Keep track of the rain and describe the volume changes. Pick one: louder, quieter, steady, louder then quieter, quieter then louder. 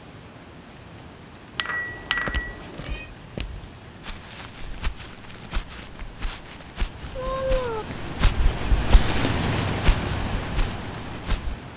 louder.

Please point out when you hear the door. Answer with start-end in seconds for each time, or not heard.
not heard.